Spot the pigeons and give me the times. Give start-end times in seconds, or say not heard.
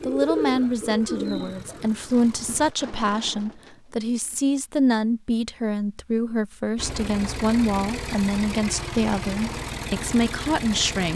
0.0-4.4.